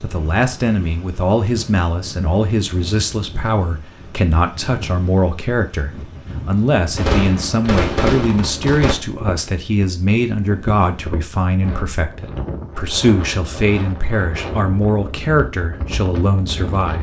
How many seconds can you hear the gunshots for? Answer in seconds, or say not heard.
2 s.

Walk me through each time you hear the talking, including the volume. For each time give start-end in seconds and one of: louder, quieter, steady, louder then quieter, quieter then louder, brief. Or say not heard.
0.0-16.9 steady.